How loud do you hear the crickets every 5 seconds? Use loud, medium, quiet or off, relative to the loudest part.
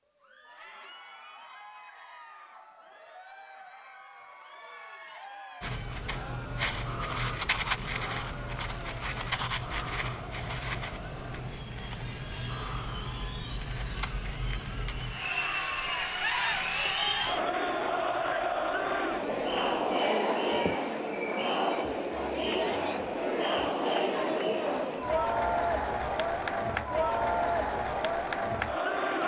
off, loud, loud, quiet, quiet, quiet.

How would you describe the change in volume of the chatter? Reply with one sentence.
The loudness of the chatter goes up.